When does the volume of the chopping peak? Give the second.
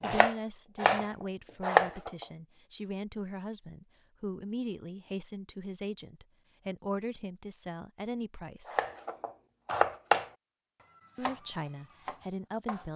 2 s.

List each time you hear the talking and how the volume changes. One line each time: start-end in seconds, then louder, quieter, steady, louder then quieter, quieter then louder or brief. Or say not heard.
0.0-8.8 steady
11.2-12.9 brief.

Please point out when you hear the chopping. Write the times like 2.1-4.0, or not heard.
0.0-2.2, 8.7-10.3, 11.2-12.9.